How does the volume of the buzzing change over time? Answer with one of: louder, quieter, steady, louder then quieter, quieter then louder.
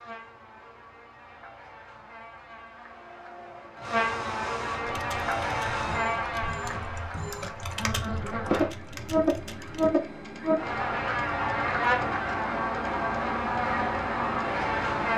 louder.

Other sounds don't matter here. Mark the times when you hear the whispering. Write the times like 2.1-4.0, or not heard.
not heard.